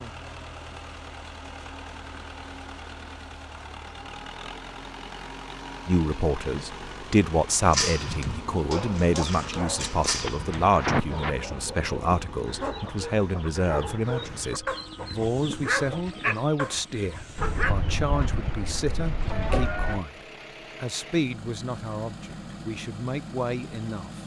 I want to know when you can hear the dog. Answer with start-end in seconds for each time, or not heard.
7.7-17.8.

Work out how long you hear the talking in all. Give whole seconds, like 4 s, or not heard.
18 s.